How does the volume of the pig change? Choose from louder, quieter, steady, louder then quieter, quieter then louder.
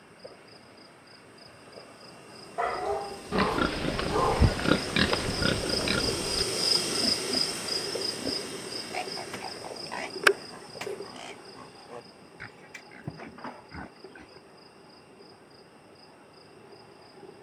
quieter.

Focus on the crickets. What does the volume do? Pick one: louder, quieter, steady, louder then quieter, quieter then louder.
louder then quieter.